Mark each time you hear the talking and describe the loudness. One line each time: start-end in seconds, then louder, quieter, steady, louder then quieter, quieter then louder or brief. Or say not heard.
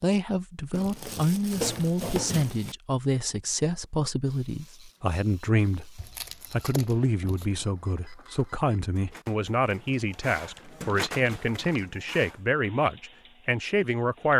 0.0-14.3 steady.